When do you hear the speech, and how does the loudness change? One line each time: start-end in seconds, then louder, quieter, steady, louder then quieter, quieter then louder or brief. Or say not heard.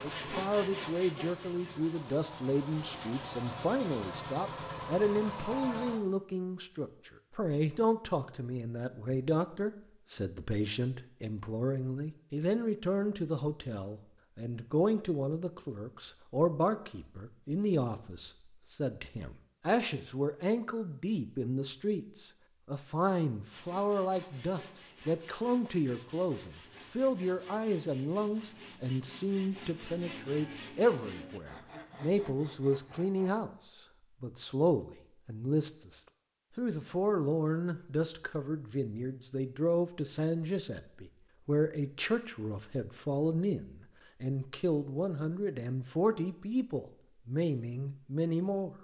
0.0-48.7 steady.